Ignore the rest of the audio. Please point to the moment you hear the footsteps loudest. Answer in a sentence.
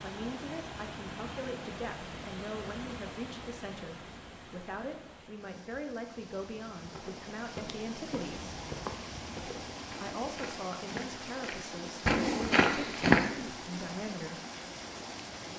The loudest moment of the footsteps is at 13 seconds.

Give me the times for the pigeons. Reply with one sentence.
You can't hear the pigeons here.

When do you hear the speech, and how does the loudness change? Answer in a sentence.
You can hear the speech from 0.0 to 8.6 s, at a steady volume; and from 10.0 to 14.4 s, at a steady volume.